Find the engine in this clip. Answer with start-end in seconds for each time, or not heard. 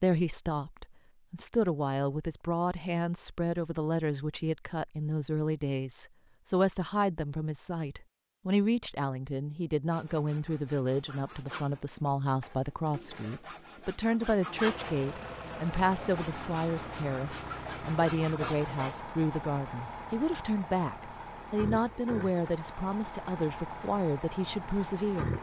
14.5-25.3.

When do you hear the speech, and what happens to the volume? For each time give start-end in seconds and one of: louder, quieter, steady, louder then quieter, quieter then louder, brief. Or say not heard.
0.0-25.3 steady.